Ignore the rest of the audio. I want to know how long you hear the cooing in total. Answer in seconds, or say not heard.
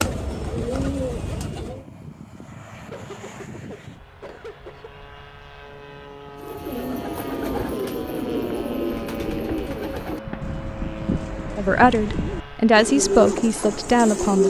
10 s.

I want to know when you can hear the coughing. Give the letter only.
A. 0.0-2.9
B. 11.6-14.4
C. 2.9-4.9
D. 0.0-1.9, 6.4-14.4
C.